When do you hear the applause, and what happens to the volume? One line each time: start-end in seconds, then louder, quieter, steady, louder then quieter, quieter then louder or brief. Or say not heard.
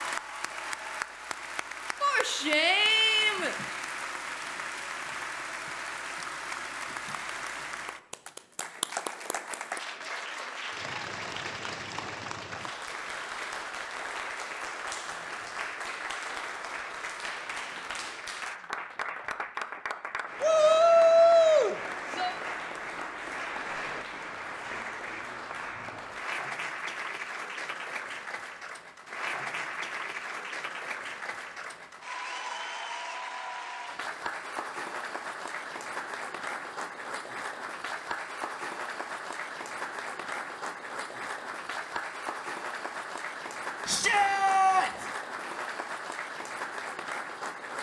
0.0-47.7 steady.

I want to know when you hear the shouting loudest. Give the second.
21 s.